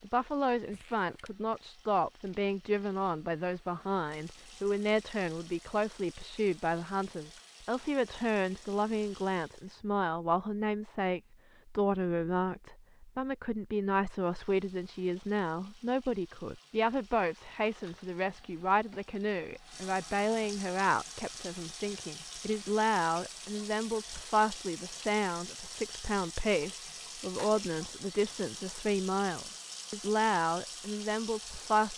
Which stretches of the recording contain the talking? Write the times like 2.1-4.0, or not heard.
0.0-31.9.